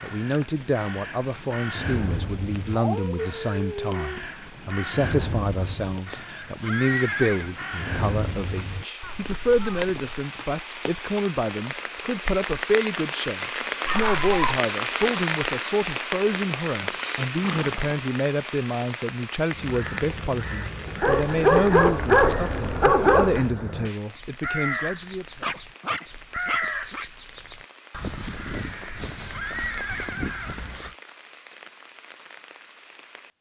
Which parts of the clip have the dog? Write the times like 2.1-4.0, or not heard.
2.8-4.2, 13.8-14.6, 21.0-23.4, 25.4-27.1.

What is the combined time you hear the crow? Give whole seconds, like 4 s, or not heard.
22 s.